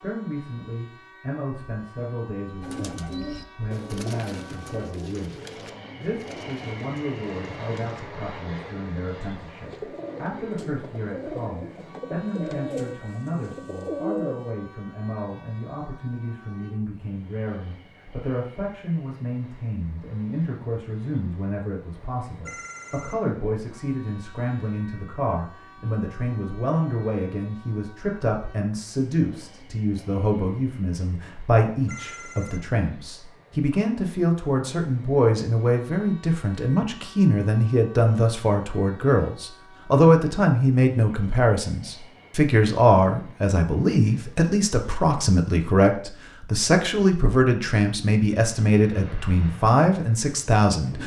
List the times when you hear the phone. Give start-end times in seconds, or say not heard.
22.4-23.2, 31.9-32.6.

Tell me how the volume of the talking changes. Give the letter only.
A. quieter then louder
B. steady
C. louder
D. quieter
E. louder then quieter
C.